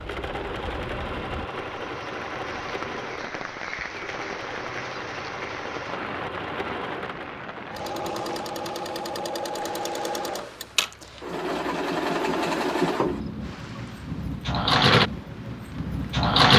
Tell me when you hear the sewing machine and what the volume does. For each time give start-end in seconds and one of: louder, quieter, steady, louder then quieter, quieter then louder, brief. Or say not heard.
0.0-16.5 louder.